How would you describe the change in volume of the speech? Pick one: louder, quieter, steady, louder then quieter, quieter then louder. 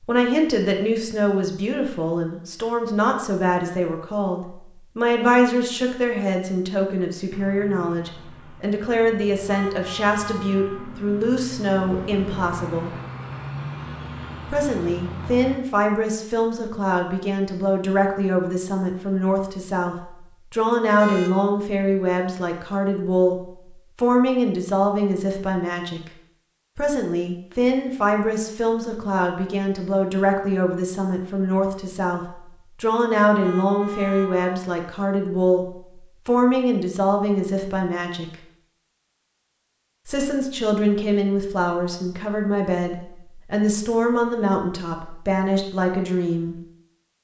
steady.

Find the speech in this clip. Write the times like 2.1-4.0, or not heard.
0.0-12.9, 14.5-26.0, 26.8-38.3, 40.0-46.6.